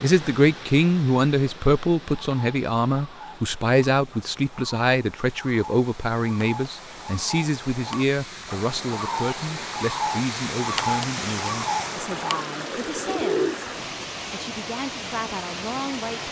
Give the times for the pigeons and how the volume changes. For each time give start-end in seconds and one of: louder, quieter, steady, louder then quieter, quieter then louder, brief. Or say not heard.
2.0-13.6 louder.